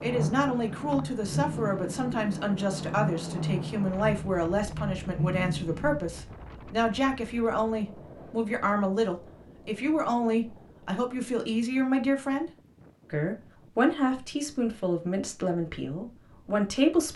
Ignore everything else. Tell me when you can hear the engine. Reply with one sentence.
The engine can be heard from 0.0 to 6.0 s.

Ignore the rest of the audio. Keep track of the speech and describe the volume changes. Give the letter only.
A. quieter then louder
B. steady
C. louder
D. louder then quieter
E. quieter
B.